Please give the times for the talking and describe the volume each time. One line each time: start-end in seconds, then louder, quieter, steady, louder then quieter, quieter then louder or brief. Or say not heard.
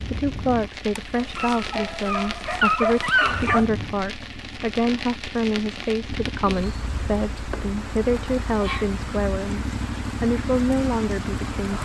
0.1-11.8 steady.